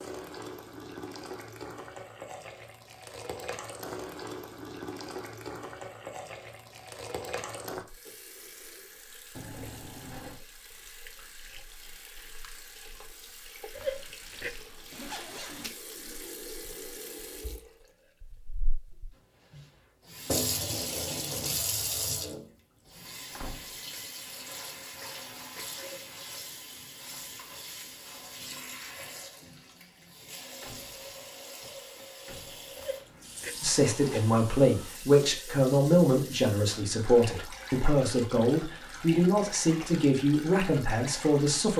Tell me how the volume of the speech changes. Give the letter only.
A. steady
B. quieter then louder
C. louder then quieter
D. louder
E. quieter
A.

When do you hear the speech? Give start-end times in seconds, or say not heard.
33.6-41.7.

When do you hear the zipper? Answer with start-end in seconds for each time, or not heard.
13.8-15.7, 32.8-34.4.